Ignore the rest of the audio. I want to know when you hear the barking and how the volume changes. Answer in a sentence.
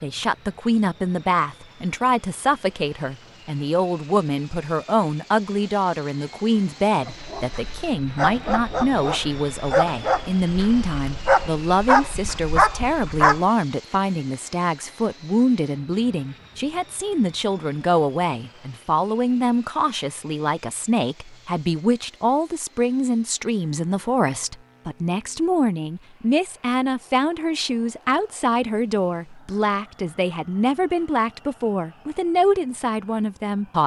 The barking can be heard from 7.0 to 13.4 s, getting louder.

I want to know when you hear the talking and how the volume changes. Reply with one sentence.
The talking can be heard from 0.0 to 33.8 s, at a steady volume.